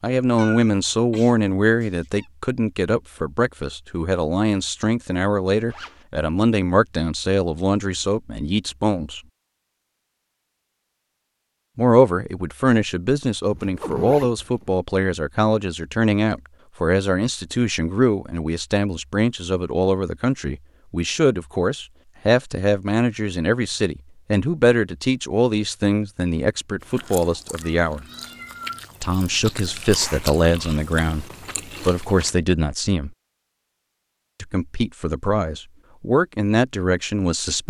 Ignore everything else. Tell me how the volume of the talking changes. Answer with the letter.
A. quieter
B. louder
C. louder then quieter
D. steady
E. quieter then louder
D.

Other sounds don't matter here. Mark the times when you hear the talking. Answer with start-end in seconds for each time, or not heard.
0.0-9.2, 11.8-28.1, 29.0-33.1, 34.4-37.6.